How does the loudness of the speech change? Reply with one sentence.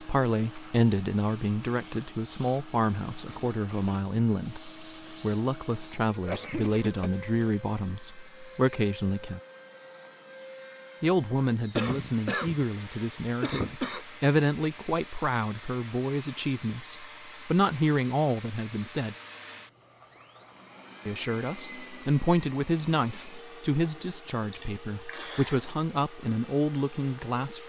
The loudness of the speech stays about the same.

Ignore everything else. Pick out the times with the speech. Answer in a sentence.
You can hear the speech from 0.0 to 9.4 s, from 11.0 to 19.1 s and from 21.1 to 27.6 s.